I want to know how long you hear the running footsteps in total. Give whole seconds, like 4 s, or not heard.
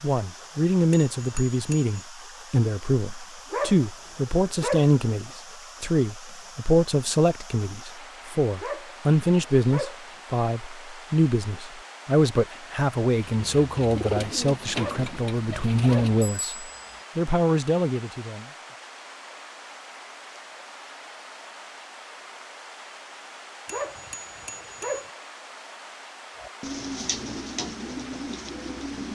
not heard.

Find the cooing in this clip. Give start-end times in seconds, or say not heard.
13.2-16.2, 26.4-29.1.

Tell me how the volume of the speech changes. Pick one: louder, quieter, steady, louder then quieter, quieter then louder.
steady.